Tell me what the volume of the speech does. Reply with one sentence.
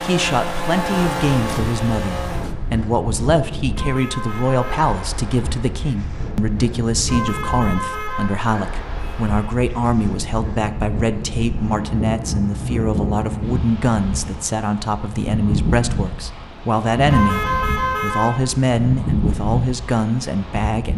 The volume of the speech stays about the same.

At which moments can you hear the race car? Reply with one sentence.
The race car can be heard from 0.0 to 2.5 s.